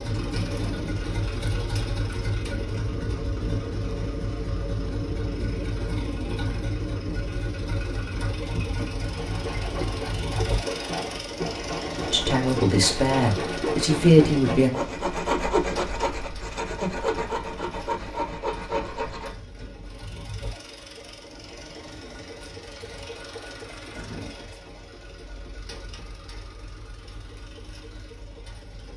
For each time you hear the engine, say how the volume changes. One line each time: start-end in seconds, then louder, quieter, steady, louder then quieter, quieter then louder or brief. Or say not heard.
0.0-28.9 quieter.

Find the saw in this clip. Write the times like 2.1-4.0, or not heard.
9.2-19.4.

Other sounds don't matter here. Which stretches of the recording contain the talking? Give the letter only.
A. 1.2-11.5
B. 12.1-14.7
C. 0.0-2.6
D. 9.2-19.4
B.